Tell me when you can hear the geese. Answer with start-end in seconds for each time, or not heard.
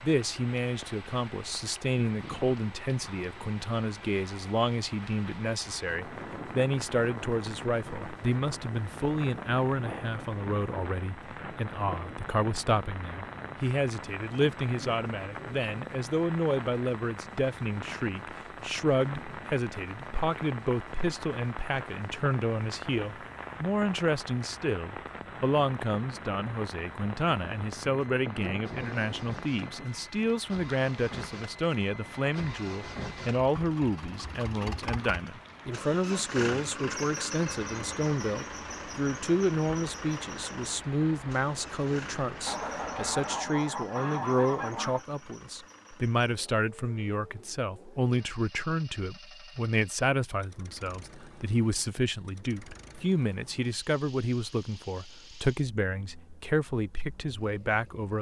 42.5-45.0.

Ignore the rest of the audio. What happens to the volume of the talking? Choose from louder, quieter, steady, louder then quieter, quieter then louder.
steady.